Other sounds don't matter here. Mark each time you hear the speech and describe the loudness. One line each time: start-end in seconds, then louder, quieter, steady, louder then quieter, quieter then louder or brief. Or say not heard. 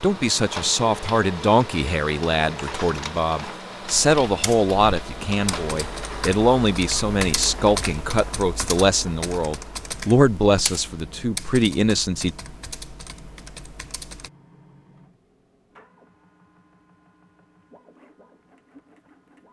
0.0-12.3 steady.